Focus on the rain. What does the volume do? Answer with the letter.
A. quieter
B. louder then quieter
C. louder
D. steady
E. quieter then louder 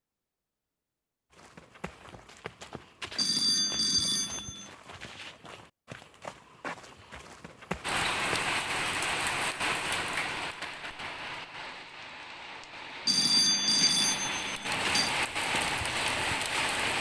E.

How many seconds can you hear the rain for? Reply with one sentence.
The rain can be heard for 9 seconds in total.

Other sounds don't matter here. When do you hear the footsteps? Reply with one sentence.
The footsteps can be heard from 1.3 to 8.5 s and from 14.7 to 16.9 s.